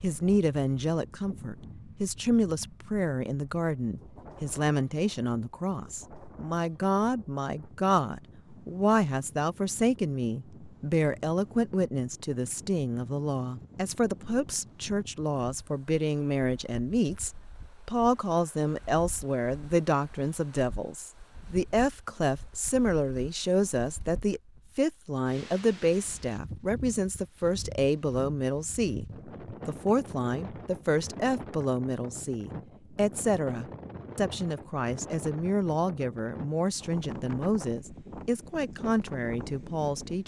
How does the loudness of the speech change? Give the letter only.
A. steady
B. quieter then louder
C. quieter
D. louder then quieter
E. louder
A.